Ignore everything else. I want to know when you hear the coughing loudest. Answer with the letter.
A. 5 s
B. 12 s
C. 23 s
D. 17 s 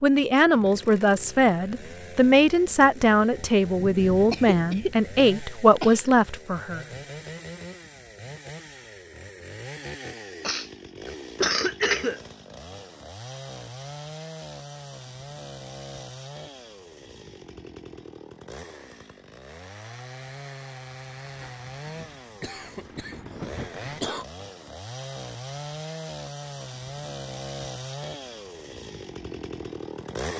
B.